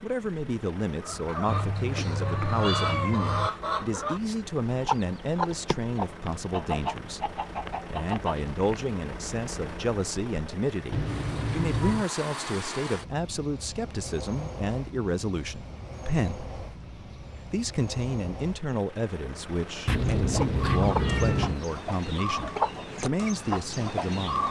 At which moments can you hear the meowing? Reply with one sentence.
The meowing can be heard from 1.4 to 3.5 s, from 10.9 to 12.1 s and from 19.9 to 21.6 s.